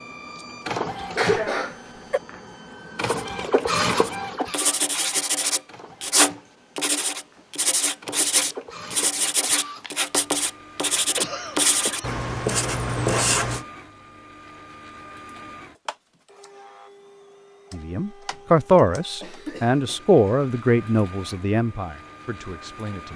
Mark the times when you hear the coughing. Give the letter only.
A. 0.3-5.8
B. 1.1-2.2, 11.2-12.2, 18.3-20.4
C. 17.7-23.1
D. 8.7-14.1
B.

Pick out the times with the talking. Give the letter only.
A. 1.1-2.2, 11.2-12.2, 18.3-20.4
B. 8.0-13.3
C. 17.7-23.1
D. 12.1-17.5
C.